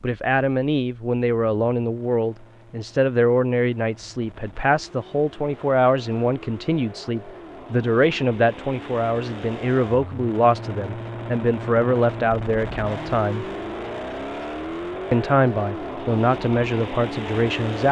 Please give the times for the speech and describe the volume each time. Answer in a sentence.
You can hear the speech from 0.0 to 13.4 s, at a steady volume; and briefly from 15.1 to 17.8 s.